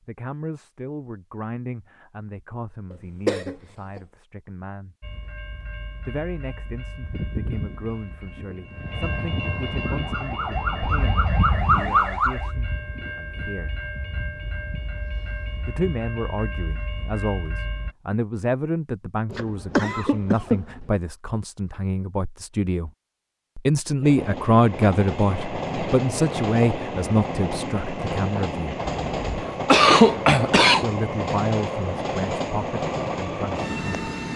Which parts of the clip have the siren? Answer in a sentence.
You can hear the siren from 9.8 to 12.5 s.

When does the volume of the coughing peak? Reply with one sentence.
The volume of the coughing peaks at 30 seconds.